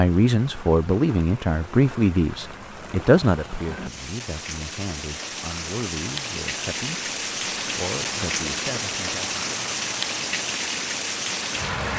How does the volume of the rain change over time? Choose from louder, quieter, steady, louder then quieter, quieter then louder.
louder.